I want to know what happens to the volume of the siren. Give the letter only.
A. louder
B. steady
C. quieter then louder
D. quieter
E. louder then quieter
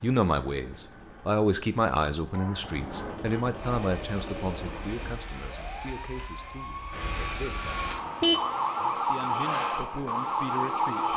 A.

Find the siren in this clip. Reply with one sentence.
The siren can be heard from 3.5 to 11.1 s.